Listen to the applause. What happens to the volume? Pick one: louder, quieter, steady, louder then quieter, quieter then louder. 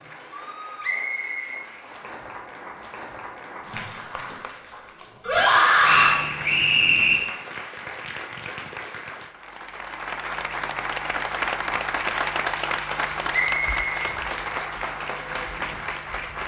louder.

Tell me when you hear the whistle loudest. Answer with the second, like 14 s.
7 s.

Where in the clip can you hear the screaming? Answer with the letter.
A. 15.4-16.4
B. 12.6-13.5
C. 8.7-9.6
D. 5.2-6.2
D.